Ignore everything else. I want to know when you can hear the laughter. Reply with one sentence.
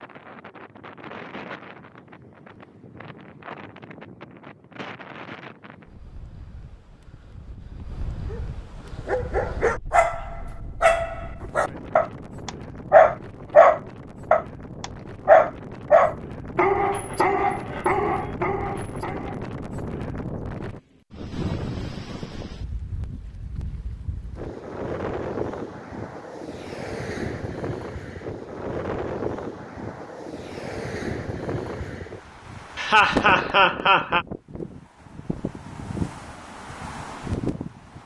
The laughter can be heard from 32.8 to 34.2 s.